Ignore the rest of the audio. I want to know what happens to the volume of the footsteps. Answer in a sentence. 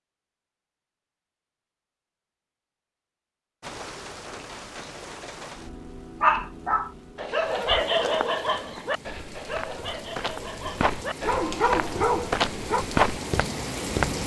The loudness of the footsteps goes up.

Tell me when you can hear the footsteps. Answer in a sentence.
The footsteps can be heard from 8.0 to 14.2 s.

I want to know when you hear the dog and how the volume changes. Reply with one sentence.
The dog can be heard from 6.2 to 12.8 s, getting quieter then louder.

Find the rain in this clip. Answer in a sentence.
You can hear the rain from 3.6 to 14.2 s.